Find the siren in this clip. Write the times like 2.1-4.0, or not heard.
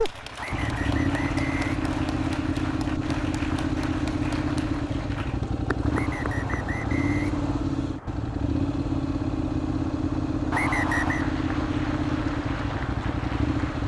not heard.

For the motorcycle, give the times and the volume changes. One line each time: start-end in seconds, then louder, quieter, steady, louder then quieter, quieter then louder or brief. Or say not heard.
0.0-13.8 steady.